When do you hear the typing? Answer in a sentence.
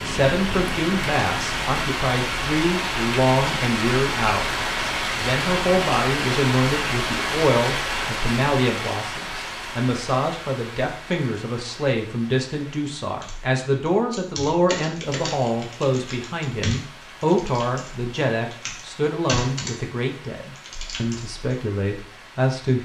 You can hear the typing from 13.2 to 19.8 s and from 20.4 to 21.4 s.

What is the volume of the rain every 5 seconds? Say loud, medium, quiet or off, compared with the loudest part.
loud, loud, quiet, quiet, quiet.